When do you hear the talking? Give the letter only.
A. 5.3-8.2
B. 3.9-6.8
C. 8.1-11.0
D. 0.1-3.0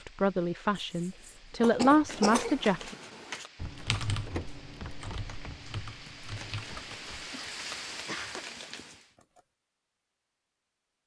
D.